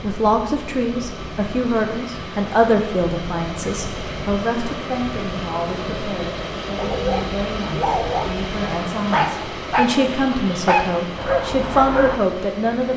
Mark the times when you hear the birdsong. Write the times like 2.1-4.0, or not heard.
not heard.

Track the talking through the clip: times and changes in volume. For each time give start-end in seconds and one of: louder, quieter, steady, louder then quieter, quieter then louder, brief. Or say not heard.
0.0-12.9 quieter then louder.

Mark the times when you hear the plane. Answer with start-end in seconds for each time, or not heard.
0.0-12.9.